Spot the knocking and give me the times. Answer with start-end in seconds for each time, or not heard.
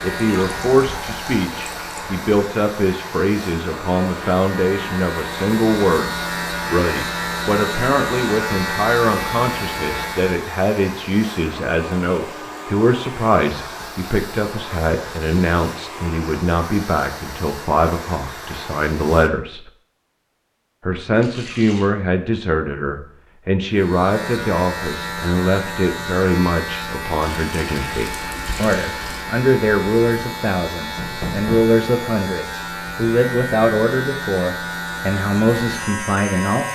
30.9-31.7.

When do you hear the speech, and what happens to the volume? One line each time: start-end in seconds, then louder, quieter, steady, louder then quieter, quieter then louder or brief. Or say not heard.
0.0-19.7 steady
20.9-36.7 steady.